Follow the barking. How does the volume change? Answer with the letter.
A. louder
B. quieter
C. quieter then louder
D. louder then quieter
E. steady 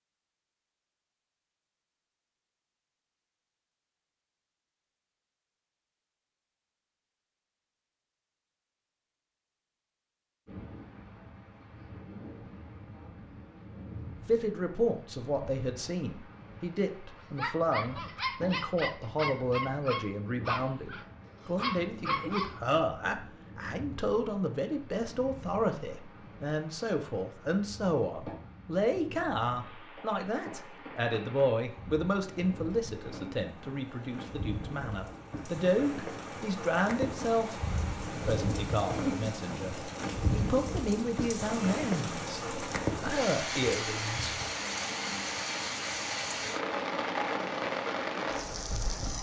C.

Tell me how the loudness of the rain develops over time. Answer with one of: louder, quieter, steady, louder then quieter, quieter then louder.
louder.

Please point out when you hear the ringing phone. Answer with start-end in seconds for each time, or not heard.
not heard.